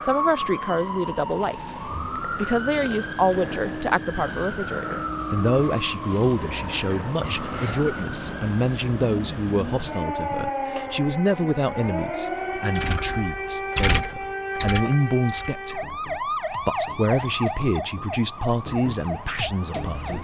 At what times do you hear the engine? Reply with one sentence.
You can hear the engine from 12.8 to 15.6 s.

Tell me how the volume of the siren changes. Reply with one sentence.
The loudness of the siren stays about the same.